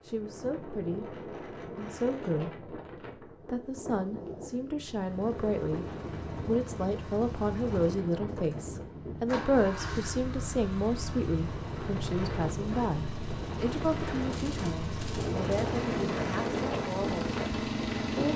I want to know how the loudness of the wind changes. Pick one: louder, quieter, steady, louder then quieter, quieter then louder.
louder.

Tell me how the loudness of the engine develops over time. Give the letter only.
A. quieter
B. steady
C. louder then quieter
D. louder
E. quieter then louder
D.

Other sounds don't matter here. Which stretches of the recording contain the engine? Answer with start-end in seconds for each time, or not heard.
4.8-18.3.